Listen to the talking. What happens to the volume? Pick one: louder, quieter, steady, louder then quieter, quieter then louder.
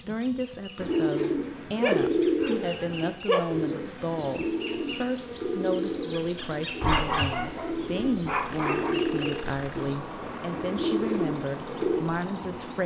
steady.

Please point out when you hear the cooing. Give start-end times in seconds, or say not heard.
0.8-12.1.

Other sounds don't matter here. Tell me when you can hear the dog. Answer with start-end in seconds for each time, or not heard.
1.8-3.5, 6.8-8.9.